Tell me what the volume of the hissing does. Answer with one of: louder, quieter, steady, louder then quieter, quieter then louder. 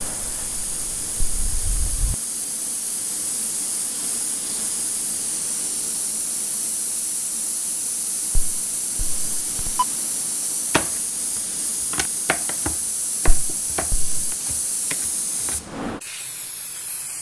steady.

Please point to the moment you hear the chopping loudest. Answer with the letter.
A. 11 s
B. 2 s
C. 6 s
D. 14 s
A.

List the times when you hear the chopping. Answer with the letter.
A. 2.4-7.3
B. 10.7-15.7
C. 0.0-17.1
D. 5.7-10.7
B.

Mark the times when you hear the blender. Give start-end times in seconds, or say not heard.
not heard.